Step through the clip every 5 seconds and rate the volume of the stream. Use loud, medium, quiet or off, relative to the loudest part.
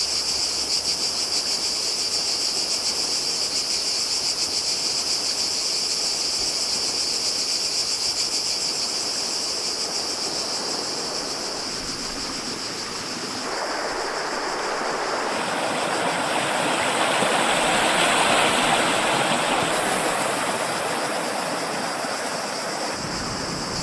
quiet, quiet, medium, loud, medium.